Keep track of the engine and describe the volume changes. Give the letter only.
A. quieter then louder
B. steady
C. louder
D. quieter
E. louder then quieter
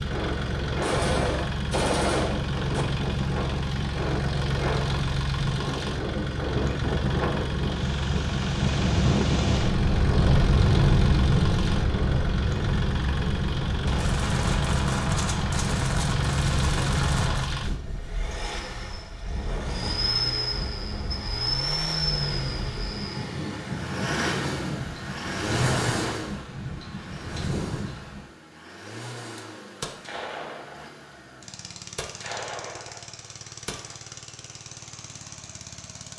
D.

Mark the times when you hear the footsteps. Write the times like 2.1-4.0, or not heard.
not heard.